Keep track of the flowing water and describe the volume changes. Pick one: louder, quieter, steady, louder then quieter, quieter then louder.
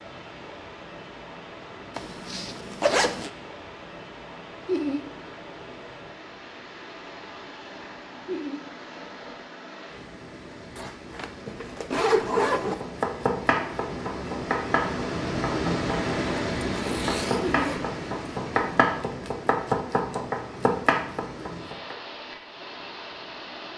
louder then quieter.